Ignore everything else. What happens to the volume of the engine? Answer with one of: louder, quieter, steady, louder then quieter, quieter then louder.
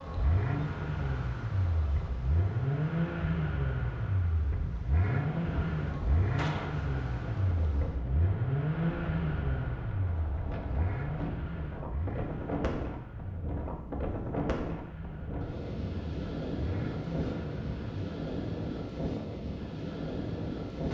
quieter.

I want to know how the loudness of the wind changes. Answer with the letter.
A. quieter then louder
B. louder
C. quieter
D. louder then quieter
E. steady
B.